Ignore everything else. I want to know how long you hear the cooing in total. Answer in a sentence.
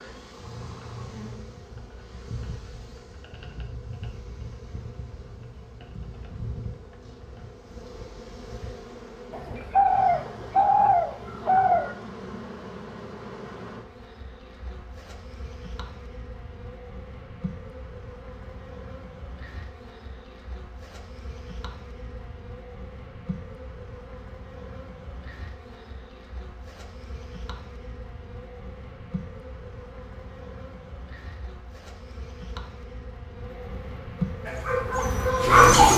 You can hear the cooing for 3 seconds altogether.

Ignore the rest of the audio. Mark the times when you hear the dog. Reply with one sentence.
You can hear the dog from 34.5 to 35.9 s.